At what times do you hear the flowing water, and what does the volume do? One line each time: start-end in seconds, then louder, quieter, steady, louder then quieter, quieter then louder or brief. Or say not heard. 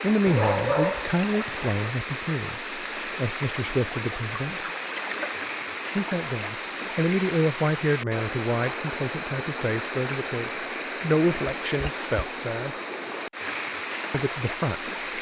0.0-15.1 steady.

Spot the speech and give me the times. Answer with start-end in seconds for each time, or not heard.
0.0-4.7, 6.0-12.8, 14.1-14.9.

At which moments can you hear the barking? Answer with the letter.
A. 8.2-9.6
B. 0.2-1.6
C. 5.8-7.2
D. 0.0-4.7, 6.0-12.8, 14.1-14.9
B.